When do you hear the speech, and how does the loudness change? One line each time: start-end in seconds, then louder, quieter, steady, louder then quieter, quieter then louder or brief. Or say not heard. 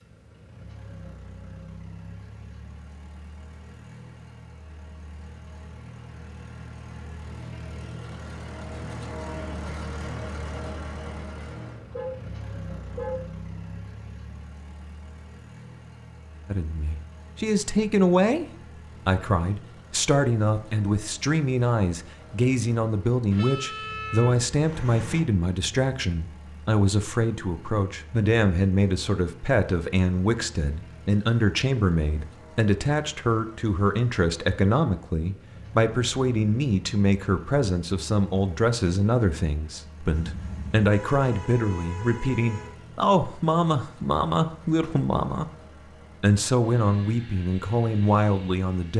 16.4-18.4 brief
19.1-45.5 steady
46.2-48.9 brief.